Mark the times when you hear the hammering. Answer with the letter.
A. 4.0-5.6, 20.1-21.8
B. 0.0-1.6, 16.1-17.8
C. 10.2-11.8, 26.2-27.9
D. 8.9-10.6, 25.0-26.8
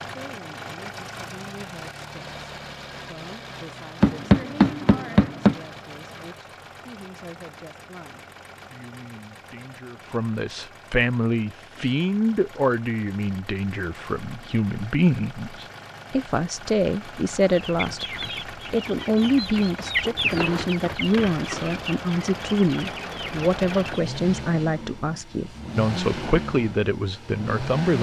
A.